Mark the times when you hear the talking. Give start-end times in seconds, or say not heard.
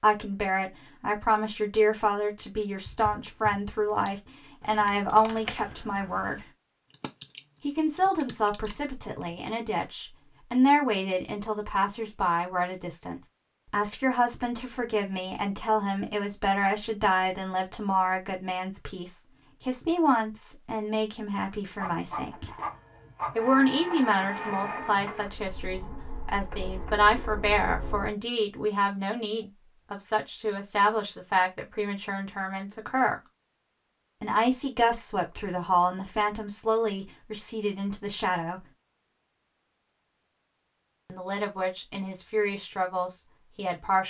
0.0-6.4, 7.6-22.5, 23.4-33.2, 34.2-38.6, 41.0-44.0.